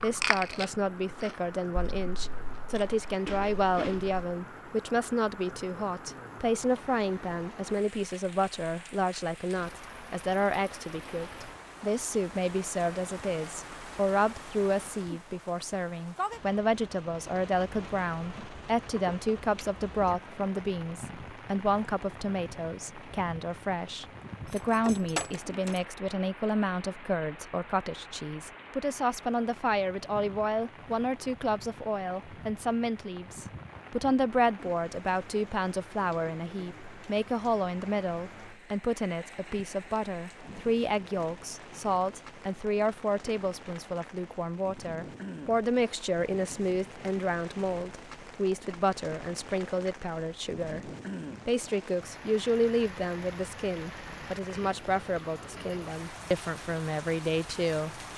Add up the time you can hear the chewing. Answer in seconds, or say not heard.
4 s.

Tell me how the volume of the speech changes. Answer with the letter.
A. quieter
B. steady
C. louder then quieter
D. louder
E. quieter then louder
B.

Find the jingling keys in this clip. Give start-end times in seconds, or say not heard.
24.4-25.8.